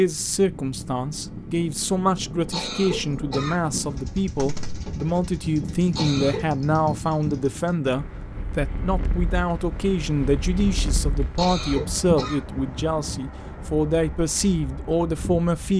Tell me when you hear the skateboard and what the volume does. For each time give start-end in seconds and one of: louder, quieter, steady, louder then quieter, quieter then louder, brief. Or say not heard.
not heard.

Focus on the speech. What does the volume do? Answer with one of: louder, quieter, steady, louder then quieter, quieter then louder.
steady.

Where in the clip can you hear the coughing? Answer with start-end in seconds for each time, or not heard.
2.5-3.6, 6.0-6.4, 11.3-12.4.